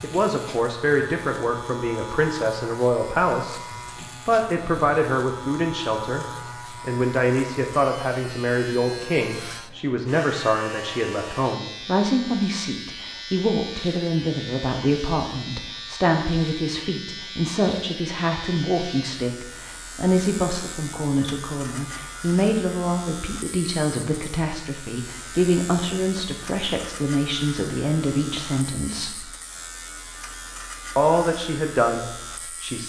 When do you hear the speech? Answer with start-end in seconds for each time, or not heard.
0.0-3.6, 4.2-29.2, 30.9-32.8.